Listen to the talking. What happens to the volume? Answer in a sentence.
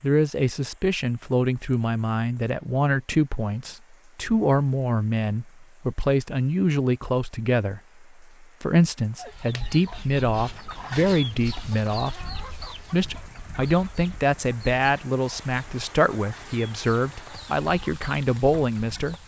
The volume of the talking stays about the same.